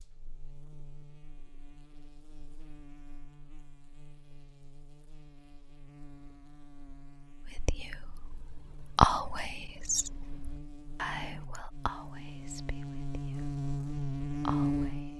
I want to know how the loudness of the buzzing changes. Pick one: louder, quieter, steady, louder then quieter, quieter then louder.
louder.